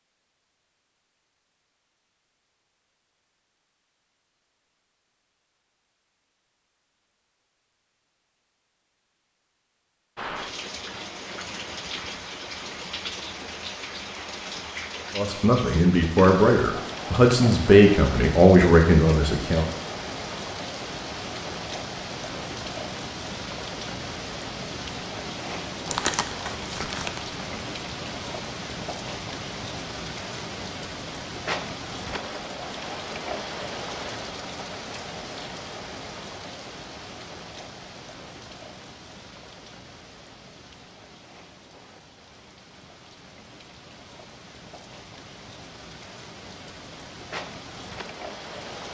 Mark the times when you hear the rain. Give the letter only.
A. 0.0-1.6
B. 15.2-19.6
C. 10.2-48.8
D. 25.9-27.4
C.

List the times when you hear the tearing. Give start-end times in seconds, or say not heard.
25.9-27.4.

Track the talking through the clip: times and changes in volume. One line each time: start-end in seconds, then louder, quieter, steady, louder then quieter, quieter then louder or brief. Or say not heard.
15.2-19.6 steady.